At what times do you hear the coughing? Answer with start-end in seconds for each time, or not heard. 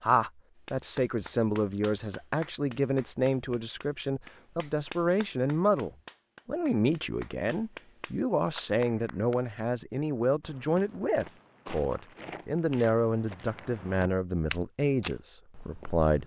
not heard.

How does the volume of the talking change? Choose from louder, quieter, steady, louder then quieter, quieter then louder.
steady.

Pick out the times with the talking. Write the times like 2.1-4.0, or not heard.
0.0-16.2.